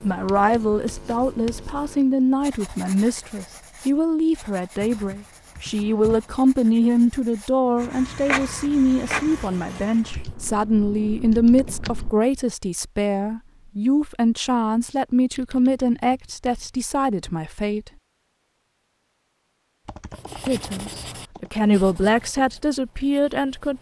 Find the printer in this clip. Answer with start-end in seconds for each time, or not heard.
7.8-10.2.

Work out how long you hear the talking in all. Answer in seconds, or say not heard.
21 s.